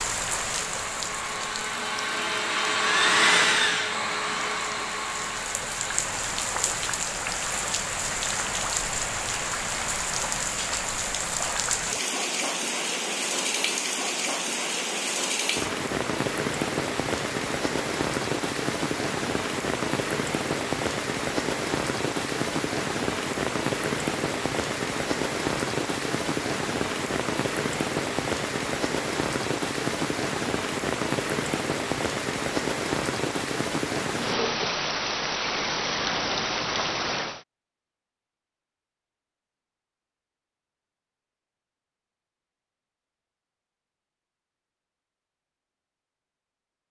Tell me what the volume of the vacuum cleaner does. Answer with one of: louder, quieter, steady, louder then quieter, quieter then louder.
louder then quieter.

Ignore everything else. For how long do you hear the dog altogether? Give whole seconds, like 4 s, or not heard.
not heard.